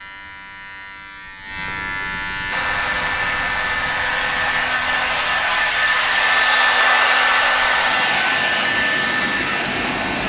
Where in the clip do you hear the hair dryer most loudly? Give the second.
7 s.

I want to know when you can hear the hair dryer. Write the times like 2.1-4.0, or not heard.
2.5-10.2.